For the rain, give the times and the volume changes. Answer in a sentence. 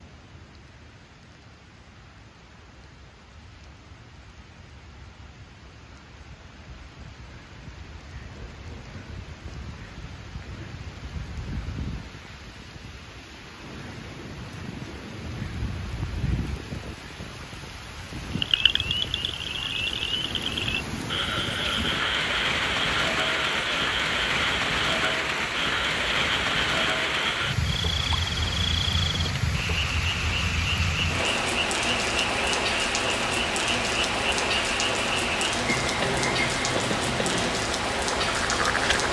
You can hear the rain from 0.0 to 39.0 s, getting louder.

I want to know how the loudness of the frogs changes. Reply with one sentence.
The loudness of the frogs stays about the same.